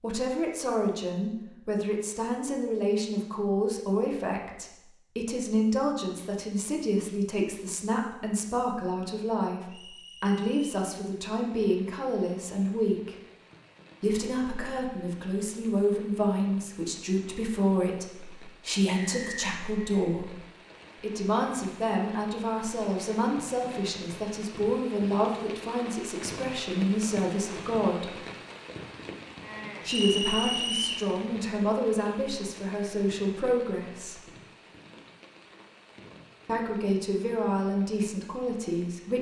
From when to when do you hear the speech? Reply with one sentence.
The speech can be heard from 0.0 to 13.2 s, from 14.0 to 20.4 s, from 21.0 to 28.1 s, from 29.9 to 34.2 s and from 36.5 to 39.1 s.